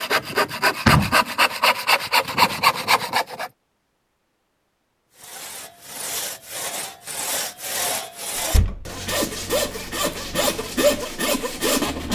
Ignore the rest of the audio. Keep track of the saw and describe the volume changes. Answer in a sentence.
The volume of the saw goes down, then up.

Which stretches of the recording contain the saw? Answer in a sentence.
You can hear the saw from 0.0 to 3.5 s and from 5.2 to 12.0 s.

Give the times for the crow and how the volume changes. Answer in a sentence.
You can't hear the crow here.